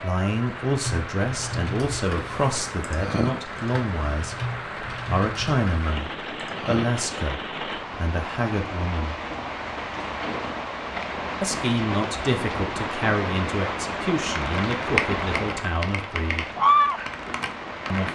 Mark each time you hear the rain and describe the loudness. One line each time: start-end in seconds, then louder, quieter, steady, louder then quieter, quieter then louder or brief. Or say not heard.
0.0-18.1 louder.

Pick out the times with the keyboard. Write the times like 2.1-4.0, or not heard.
0.7-6.8, 14.3-18.1.